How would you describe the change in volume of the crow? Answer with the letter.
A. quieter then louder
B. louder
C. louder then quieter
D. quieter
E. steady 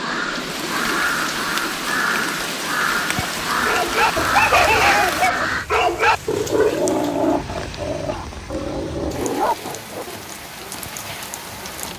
E.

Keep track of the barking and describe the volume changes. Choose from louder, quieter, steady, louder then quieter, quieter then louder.
quieter.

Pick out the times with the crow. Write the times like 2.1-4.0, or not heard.
0.0-5.7.